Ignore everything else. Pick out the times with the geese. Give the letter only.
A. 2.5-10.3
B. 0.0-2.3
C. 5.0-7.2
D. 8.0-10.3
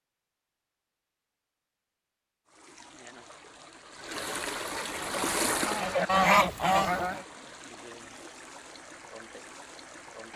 C.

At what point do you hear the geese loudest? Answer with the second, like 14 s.
6 s.